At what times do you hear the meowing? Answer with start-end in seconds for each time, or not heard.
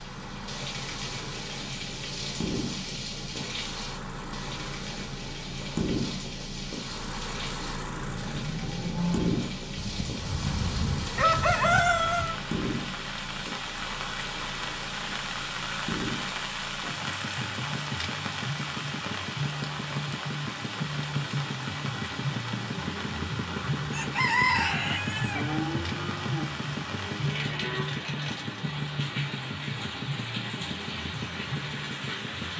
not heard.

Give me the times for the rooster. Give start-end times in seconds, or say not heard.
9.8-12.3, 23.9-25.4.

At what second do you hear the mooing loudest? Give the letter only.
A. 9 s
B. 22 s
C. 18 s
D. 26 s
A.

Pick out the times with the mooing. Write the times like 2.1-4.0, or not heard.
8.2-9.3, 25.3-27.9.